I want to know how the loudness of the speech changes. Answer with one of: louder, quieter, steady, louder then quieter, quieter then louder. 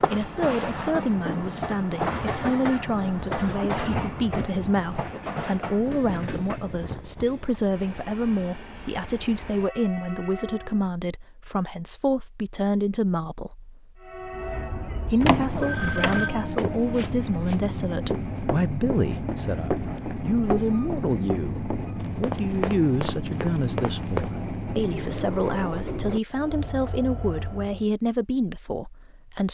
steady.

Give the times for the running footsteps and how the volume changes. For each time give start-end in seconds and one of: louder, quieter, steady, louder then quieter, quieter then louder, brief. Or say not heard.
16.6-24.3 steady.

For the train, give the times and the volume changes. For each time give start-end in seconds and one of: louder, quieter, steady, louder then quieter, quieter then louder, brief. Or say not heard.
0.0-10.9 quieter
14.0-27.9 steady.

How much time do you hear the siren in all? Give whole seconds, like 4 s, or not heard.
not heard.